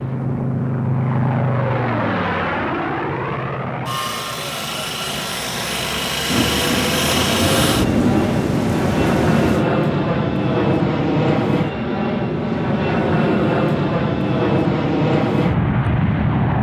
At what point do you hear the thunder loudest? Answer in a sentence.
The volume of the thunder peaks at 8 seconds.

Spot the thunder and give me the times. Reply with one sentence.
The thunder can be heard from 6.2 to 9.7 s.